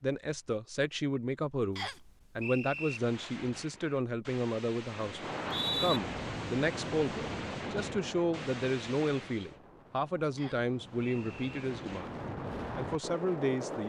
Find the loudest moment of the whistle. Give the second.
6 s.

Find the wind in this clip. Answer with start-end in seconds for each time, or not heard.
5.0-13.8.